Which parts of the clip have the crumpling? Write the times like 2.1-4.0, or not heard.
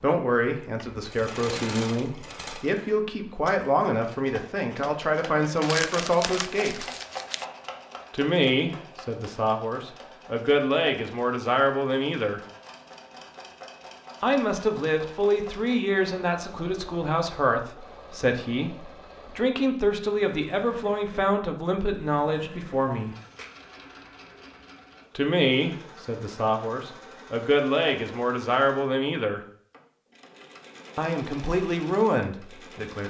5.6-7.5.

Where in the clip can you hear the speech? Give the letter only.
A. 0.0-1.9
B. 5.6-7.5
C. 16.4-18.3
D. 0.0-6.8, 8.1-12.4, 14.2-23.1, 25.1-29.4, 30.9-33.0
D.